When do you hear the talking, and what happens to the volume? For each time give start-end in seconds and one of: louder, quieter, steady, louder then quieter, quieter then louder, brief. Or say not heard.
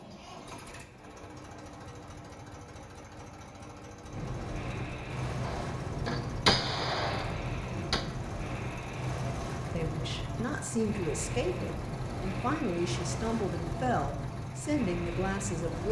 9.7-15.8 steady.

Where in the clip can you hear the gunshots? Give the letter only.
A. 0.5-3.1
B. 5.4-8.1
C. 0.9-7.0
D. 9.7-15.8
B.